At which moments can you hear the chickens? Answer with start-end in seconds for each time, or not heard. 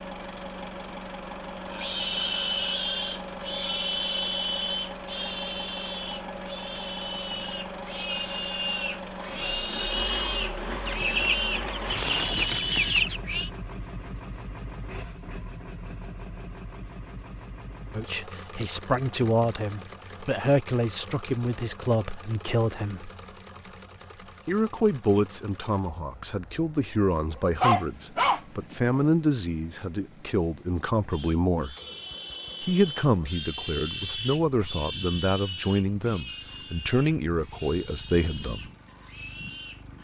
10.8-13.2.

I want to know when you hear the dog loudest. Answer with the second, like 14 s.
28 s.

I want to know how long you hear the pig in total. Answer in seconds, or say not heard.
21 s.